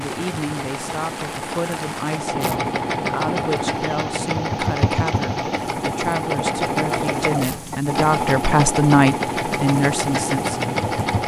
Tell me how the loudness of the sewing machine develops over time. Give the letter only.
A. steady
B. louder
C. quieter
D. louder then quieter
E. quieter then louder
B.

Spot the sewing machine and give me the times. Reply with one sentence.
You can hear the sewing machine from 0.0 to 11.2 s.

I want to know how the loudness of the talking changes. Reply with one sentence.
The volume of the talking goes up.